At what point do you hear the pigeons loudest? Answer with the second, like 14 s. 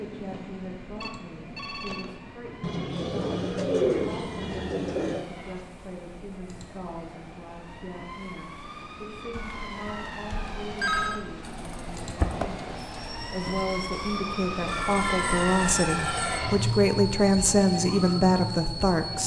4 s.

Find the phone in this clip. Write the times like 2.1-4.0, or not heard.
1.0-2.1, 9.3-11.2, 14.7-16.4.